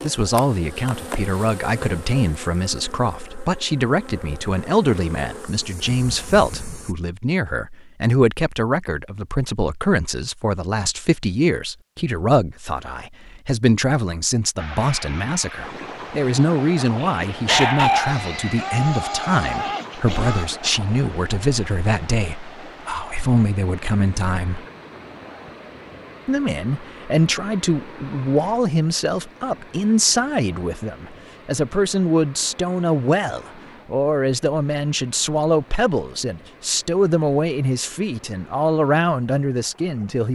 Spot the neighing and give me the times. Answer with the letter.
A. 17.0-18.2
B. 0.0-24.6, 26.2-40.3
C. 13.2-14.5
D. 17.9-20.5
D.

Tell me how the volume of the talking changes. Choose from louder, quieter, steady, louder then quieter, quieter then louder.
steady.